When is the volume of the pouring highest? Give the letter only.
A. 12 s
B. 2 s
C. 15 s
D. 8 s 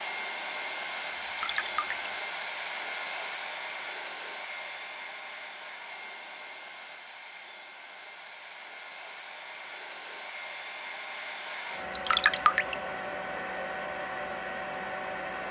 A.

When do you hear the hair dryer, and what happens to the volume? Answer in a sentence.
You can hear the hair dryer from 0.0 to 15.4 s, getting quieter then louder.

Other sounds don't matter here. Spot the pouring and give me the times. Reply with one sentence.
You can hear the pouring from 1.1 to 2.1 s and from 11.8 to 12.8 s.